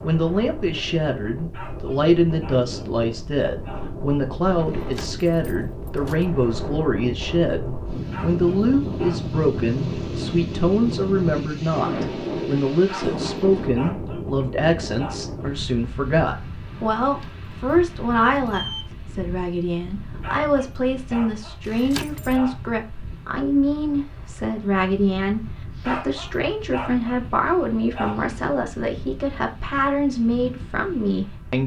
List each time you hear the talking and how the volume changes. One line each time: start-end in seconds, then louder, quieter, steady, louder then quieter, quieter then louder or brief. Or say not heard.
0.0-31.6 steady.